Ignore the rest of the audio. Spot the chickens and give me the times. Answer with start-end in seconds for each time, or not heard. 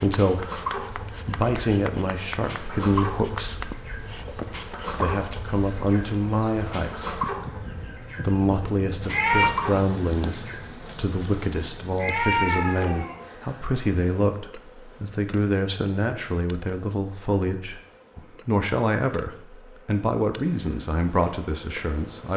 0.1-10.6.